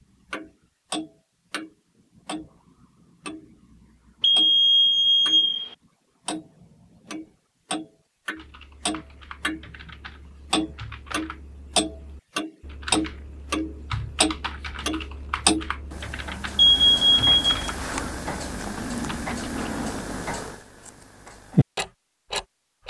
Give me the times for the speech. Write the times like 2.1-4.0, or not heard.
not heard.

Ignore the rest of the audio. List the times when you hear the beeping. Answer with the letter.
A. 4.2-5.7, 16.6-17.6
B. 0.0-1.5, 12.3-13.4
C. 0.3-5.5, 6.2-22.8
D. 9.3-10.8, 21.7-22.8
A.